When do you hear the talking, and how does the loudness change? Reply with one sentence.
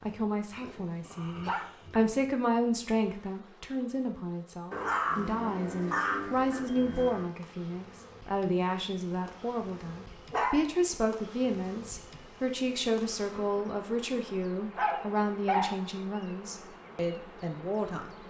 You can hear the talking from 0.0 to 18.1 s, at a steady volume.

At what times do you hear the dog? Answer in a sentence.
The dog can be heard from 0.5 to 2.4 s, from 4.7 to 7.2 s, from 10.3 to 10.8 s and from 14.8 to 15.8 s.